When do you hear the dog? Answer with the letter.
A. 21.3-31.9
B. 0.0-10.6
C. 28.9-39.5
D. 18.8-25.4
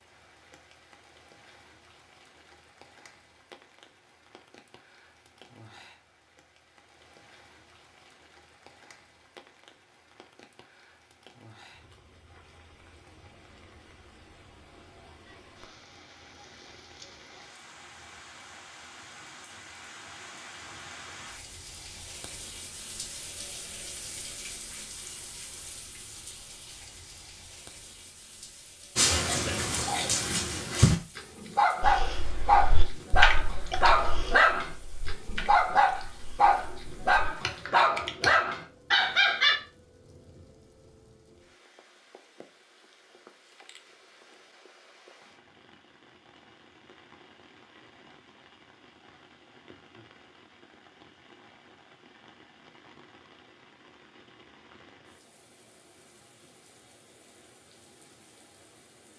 C.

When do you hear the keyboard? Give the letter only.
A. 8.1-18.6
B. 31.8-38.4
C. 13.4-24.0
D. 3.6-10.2
B.